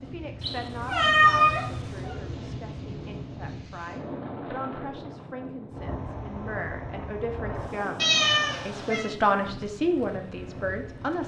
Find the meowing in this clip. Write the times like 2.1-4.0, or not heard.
0.4-2.1, 8.0-9.1.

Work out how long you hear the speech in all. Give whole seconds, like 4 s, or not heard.
11 s.